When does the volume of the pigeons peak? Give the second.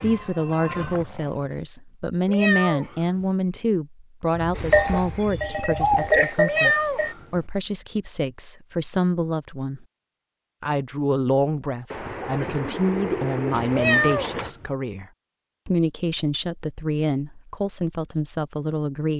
6 s.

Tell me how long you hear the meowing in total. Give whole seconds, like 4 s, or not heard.
3 s.